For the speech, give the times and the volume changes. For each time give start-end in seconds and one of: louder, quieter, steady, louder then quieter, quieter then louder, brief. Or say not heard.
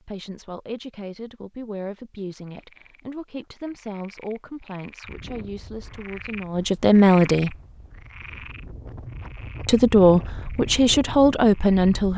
0.0-7.5 louder
9.7-12.1 brief.